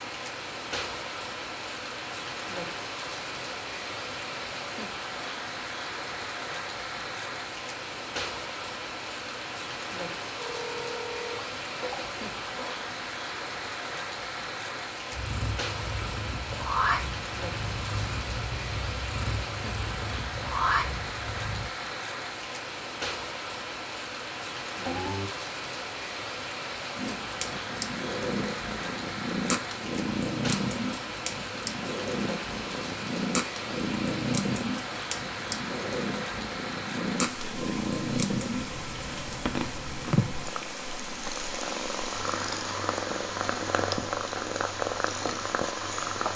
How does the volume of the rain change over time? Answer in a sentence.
The volume of the rain stays about the same.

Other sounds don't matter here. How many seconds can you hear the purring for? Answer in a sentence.
The purring can be heard for 26 seconds in total.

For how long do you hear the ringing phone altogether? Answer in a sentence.
You can hear the ringing phone for 3 seconds altogether.